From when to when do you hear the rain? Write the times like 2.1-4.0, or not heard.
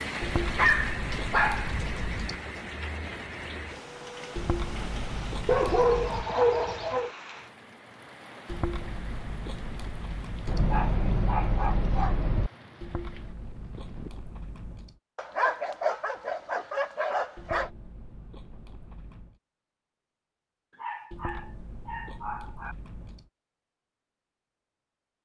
0.0-14.3.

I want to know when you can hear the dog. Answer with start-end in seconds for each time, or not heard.
0.6-2.0, 5.5-7.1, 10.4-12.5, 15.2-17.7, 20.7-22.8.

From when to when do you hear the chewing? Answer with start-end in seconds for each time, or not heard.
0.2-2.4, 4.3-6.3, 8.4-10.7, 12.8-14.9, 17.4-19.4, 21.1-23.3.